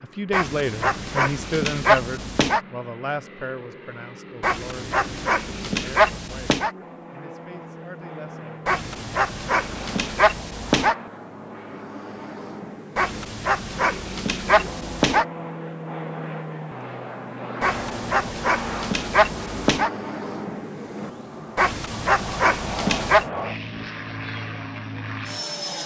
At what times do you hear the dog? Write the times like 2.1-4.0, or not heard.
0.3-2.6, 4.4-6.7, 8.7-10.9, 12.9-15.2, 17.6-19.9, 21.6-23.2.